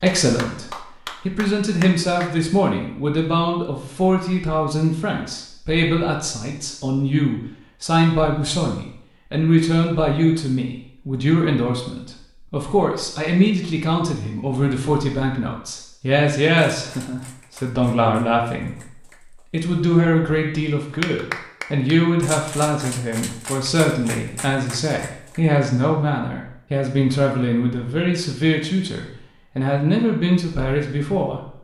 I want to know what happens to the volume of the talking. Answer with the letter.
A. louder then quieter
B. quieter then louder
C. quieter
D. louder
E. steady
E.